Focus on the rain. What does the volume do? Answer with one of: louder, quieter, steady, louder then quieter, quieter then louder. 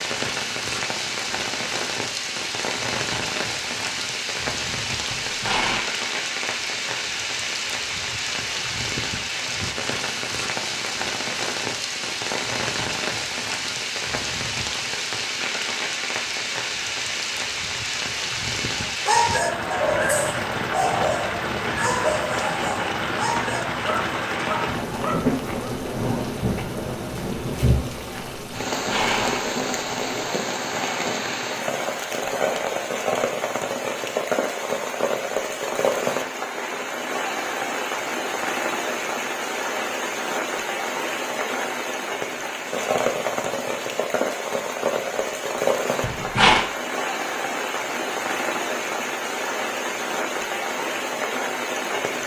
steady.